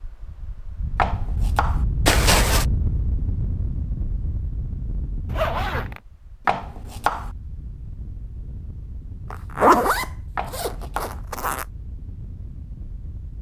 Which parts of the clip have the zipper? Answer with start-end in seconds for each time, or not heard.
2.0-2.6, 5.2-6.0, 9.3-11.7.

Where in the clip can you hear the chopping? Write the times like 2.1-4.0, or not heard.
0.9-1.9, 6.5-7.3, 10.3-11.2.